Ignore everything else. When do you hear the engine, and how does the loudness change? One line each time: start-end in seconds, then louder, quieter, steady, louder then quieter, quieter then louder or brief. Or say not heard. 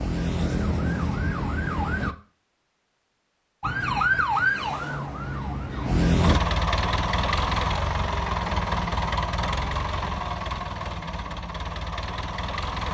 6.2-12.8 quieter.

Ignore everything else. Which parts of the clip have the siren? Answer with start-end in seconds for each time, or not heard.
0.0-2.1, 3.6-6.4.